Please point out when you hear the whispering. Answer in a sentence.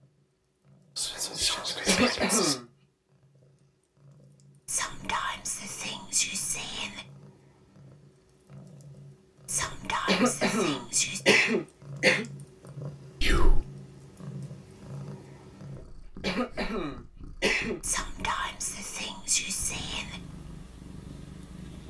You can hear the whispering from 0.9 to 2.5 s, from 4.7 to 7.0 s, from 9.4 to 11.2 s, from 13.2 to 13.7 s and from 17.8 to 20.2 s.